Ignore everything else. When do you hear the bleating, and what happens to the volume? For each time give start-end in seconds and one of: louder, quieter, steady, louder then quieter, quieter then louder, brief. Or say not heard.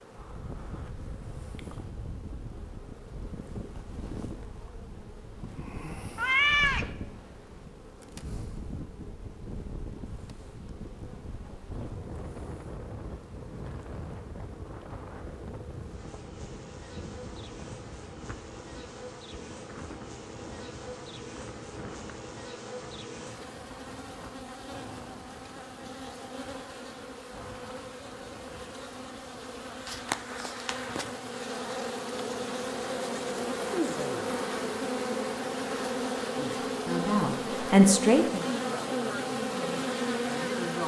not heard.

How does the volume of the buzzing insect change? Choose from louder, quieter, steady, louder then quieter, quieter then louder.
louder.